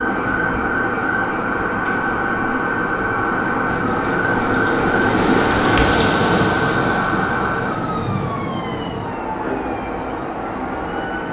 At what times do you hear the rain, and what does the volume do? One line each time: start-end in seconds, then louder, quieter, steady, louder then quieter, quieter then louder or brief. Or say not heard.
0.0-11.2 louder then quieter.